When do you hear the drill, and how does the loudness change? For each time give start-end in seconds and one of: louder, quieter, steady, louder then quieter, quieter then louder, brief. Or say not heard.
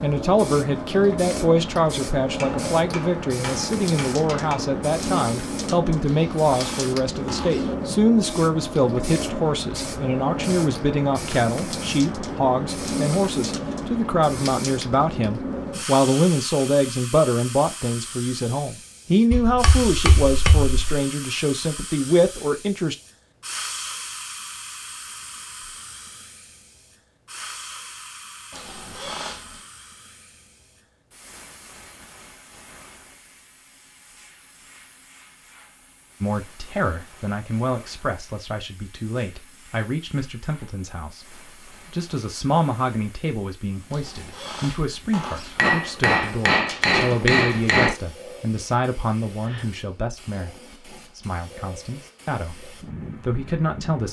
not heard.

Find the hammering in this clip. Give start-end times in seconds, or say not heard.
2.4-4.7, 19.3-21.1, 45.5-48.0.